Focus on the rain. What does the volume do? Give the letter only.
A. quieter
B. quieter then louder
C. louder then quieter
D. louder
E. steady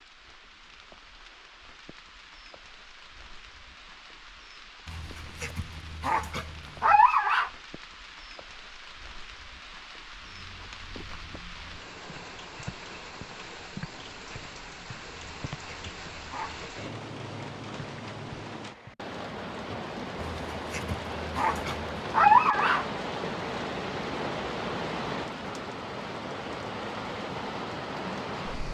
D.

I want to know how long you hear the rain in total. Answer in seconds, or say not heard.
29 s.